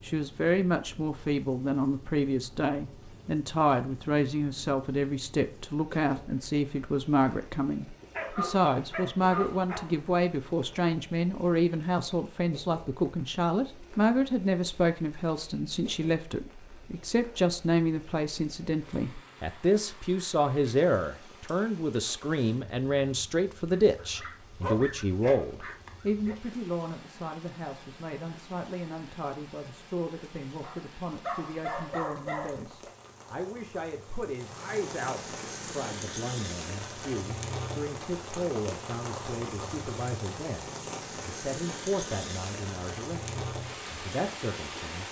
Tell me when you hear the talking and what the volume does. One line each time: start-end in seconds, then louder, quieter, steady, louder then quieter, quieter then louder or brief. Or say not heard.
0.0-45.0 quieter.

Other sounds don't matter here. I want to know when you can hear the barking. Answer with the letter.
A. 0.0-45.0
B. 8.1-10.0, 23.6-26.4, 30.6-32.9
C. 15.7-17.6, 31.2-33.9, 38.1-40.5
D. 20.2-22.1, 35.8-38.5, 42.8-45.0
B.